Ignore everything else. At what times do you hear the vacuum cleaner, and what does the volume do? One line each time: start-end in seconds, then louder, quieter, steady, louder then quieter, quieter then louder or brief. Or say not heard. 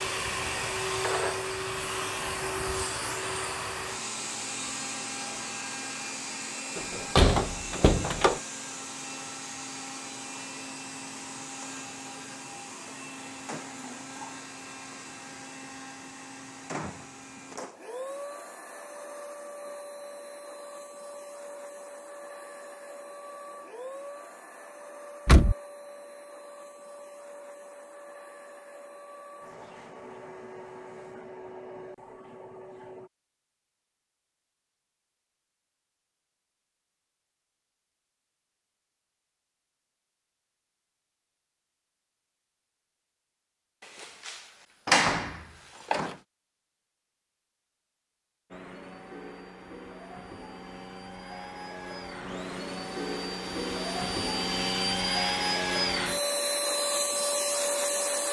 0.0-33.1 quieter
48.5-58.2 louder.